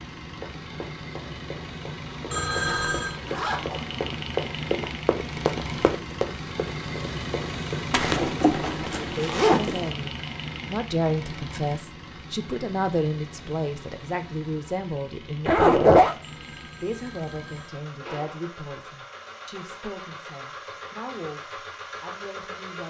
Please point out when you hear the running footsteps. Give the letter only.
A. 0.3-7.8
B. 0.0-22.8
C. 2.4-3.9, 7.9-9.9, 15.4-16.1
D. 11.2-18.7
A.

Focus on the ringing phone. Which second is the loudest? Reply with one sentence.
The loudest moment of the ringing phone is at 3 seconds.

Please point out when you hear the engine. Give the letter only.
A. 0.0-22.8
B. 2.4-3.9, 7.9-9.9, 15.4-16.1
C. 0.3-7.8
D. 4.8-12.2
A.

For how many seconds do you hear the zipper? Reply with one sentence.
You can hear the zipper for 4 seconds altogether.